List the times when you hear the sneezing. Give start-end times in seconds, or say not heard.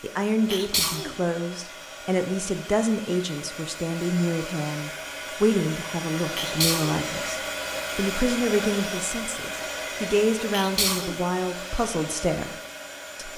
0.5-1.1, 6.3-7.0, 10.5-11.2.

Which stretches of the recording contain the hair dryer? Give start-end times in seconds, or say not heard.
0.0-13.3.